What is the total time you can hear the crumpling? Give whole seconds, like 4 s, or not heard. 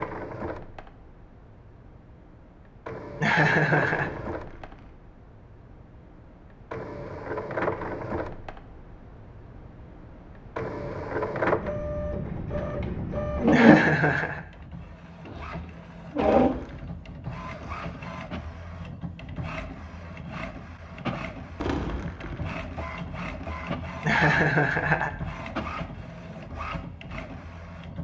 3 s.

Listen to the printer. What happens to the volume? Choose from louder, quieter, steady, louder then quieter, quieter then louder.
louder then quieter.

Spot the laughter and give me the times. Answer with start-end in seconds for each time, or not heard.
3.2-4.1, 13.5-14.4, 24.1-25.1.